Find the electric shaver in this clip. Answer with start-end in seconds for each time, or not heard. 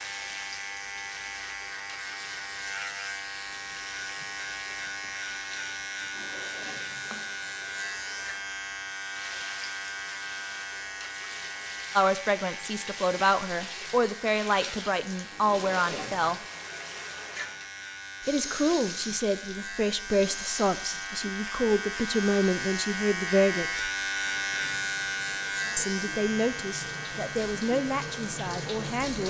0.0-29.1.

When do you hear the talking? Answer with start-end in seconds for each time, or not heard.
11.9-16.4, 18.2-23.9, 25.8-29.2.